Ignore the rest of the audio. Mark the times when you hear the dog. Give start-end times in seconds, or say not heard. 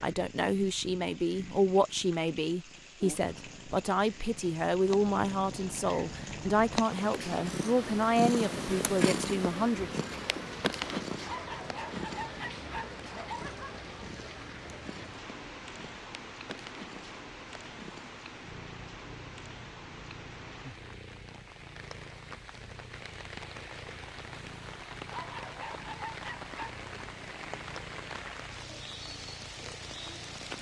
11.2-13.8, 25.1-26.8.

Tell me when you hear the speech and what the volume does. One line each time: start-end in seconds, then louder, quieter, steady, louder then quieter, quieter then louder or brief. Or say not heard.
0.0-10.0 steady.